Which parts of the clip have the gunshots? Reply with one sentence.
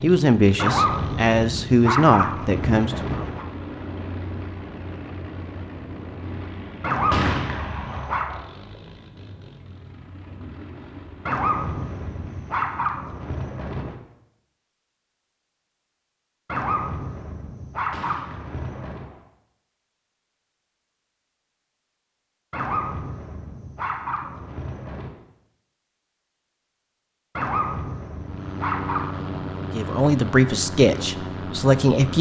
The gunshots can be heard from 7.1 to 8.4 s and from 17.9 to 19.2 s.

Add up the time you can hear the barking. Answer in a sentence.
You can hear the barking for 14 seconds altogether.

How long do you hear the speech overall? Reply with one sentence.
The speech can be heard for 6 seconds in total.